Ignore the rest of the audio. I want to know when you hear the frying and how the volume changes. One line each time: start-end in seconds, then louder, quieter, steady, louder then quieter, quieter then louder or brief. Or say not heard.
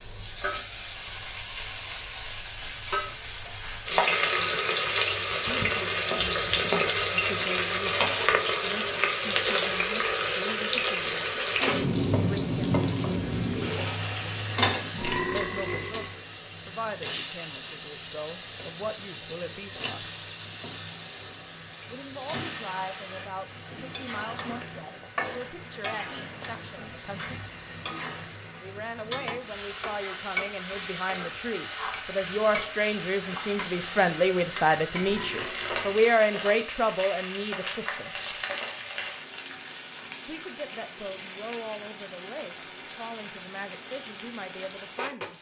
0.0-45.3 quieter.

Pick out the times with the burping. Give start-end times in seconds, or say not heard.
14.9-16.1, 35.0-36.2.